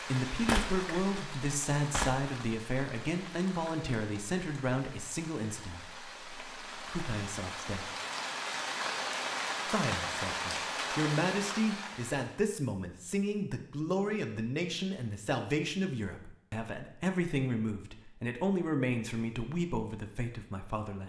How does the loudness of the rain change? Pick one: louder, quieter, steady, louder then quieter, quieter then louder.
quieter then louder.